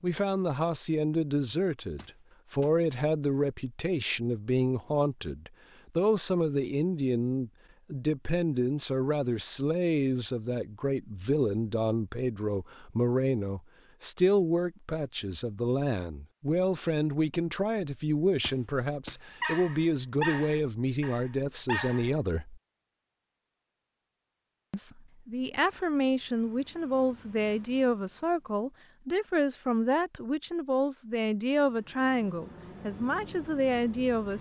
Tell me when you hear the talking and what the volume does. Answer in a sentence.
You can hear the talking from 0.0 to 22.6 s, at a steady volume; and from 24.7 to 34.3 s, at a steady volume.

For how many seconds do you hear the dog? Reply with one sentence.
The dog can be heard for 3 seconds in total.